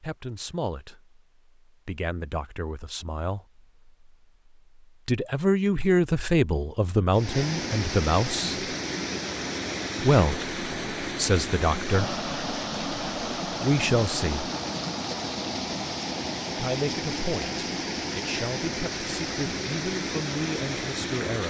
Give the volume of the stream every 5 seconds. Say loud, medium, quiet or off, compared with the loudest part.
off, loud, loud, loud, loud.